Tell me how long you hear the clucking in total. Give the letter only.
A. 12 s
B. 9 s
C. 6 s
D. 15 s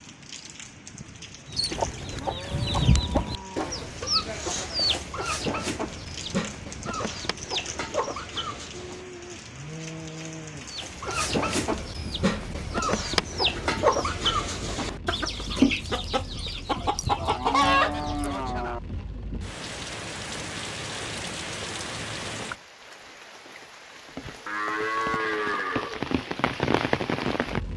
D.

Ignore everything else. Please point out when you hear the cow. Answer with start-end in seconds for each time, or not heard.
2.1-3.9, 8.8-10.8, 16.8-18.8, 24.4-26.1.